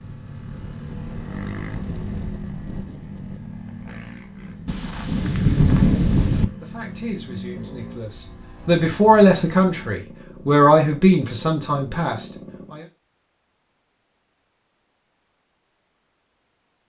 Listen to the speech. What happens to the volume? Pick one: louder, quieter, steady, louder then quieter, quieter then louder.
louder then quieter.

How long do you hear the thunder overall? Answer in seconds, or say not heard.
2 s.